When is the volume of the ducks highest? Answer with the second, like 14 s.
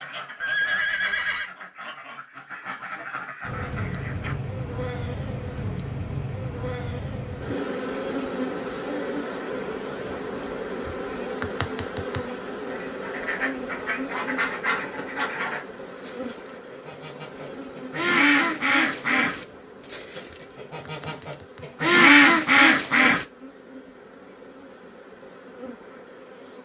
22 s.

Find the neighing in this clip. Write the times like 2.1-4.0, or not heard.
0.4-1.5.